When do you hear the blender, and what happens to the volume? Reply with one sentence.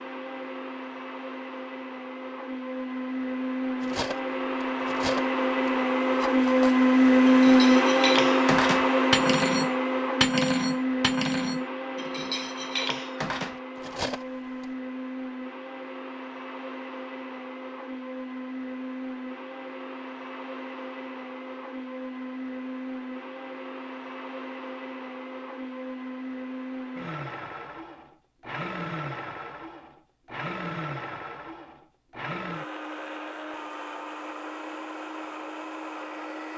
You can hear the blender from 0.0 to 36.5 s, getting quieter.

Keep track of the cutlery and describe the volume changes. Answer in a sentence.
The volume of the cutlery goes up, then down.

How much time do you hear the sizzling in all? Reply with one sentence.
You can't hear the sizzling here.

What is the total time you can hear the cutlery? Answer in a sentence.
You can hear the cutlery for 11 seconds altogether.